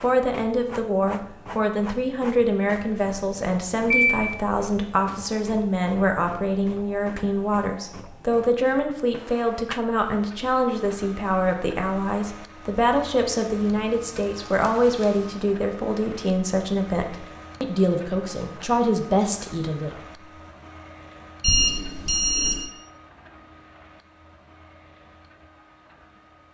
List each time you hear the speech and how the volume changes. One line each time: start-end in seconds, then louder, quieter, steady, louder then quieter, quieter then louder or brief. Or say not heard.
0.0-20.2 steady.